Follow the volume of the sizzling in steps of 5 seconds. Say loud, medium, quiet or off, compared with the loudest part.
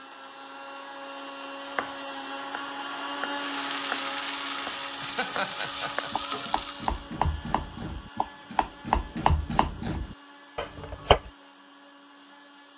loud, loud, off.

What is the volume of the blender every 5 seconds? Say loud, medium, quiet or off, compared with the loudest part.
loud, medium, quiet.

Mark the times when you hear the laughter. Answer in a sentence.
The laughter can be heard from 5.0 to 6.1 s.